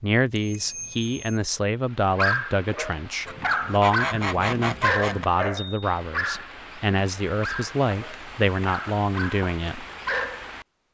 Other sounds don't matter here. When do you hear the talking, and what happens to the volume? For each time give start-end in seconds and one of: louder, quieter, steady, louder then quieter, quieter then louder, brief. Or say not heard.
0.0-9.8 steady.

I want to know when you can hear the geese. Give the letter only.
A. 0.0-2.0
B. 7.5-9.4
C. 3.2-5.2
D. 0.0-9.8
C.